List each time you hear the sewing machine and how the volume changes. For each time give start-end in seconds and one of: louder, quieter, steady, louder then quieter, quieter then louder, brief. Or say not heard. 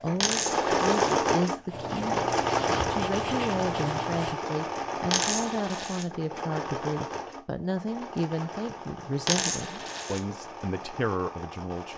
0.0-11.9 quieter.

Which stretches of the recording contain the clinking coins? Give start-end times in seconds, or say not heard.
0.2-1.1, 5.1-6.0, 9.2-10.2.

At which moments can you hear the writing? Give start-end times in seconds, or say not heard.
1.6-4.4.